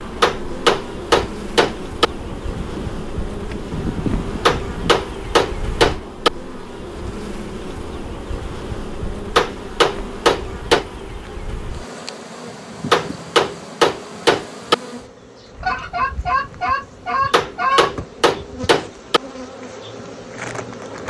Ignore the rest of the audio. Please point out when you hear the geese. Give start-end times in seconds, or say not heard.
2.2-5.1, 15.6-17.9.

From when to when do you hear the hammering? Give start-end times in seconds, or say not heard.
0.2-2.0, 4.5-6.3, 9.3-10.8, 12.9-14.8, 17.3-19.2.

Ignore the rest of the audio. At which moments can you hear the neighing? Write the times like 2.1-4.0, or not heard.
not heard.